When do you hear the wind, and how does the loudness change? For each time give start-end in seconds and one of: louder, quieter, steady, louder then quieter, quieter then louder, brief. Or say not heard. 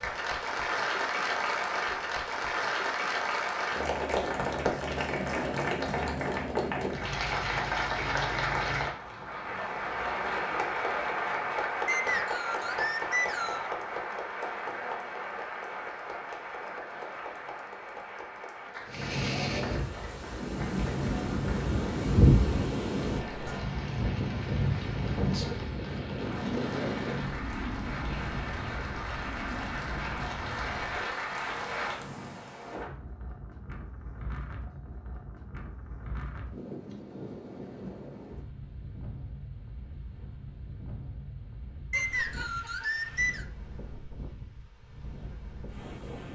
18.9-46.3 quieter.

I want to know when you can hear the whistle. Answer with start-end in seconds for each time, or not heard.
11.8-13.7, 41.9-43.5.